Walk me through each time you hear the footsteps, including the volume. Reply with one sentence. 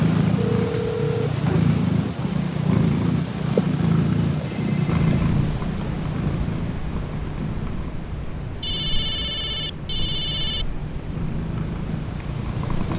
The footsteps can't be heard in this clip.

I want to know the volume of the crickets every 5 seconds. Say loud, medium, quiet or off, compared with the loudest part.
off, loud, loud.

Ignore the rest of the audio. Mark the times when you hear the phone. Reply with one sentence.
You can hear the phone from 0.3 to 1.3 s, from 4.5 to 5.2 s and from 8.6 to 10.7 s.